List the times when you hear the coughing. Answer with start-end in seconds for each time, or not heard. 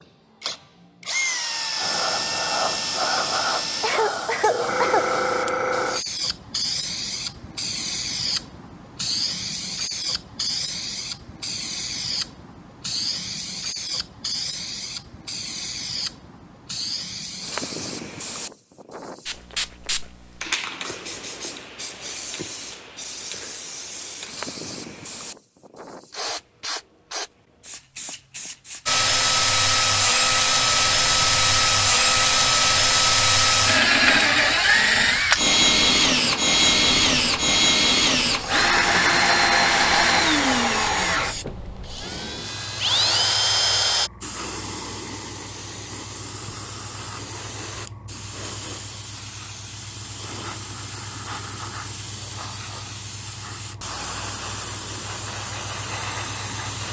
3.8-5.1.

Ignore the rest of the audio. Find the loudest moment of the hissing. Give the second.
5 s.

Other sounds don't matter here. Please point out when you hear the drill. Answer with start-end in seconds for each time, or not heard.
0.0-4.0, 28.9-44.1.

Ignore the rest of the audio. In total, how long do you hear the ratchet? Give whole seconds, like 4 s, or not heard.
not heard.